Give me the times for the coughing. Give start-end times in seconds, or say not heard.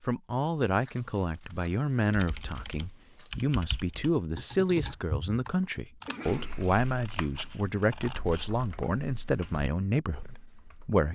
6.0-6.5.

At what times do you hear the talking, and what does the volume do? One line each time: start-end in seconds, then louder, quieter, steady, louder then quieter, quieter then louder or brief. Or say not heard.
0.0-11.1 steady.